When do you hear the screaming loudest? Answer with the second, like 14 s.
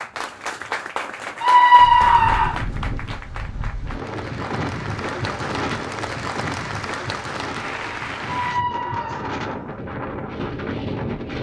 2 s.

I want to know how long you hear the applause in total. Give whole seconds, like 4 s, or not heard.
9 s.